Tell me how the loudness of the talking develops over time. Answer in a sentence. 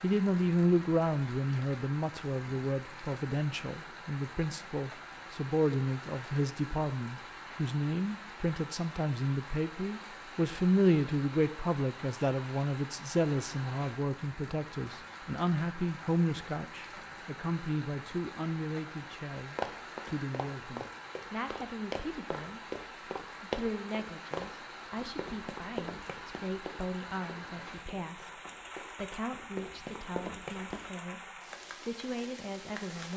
The loudness of the talking goes down.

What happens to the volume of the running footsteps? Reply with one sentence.
The volume of the running footsteps goes down, then up.